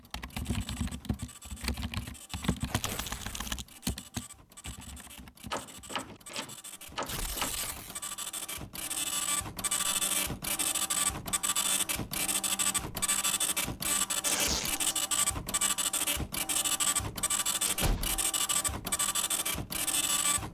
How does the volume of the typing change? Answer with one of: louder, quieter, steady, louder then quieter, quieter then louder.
quieter.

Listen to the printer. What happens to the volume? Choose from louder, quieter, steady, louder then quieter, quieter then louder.
louder.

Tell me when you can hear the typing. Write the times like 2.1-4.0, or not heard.
0.0-6.0.